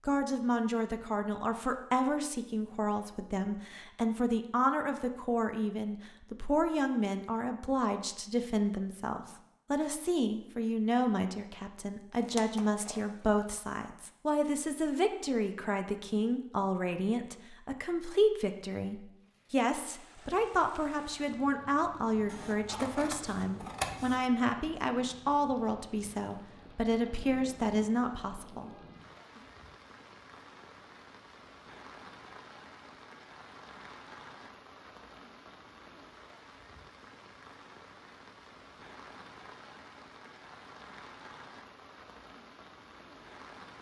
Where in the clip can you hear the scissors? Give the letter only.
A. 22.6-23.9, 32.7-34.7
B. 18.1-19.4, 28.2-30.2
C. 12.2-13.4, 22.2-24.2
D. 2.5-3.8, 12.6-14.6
C.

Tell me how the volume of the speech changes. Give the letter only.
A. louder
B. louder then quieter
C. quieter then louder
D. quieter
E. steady
E.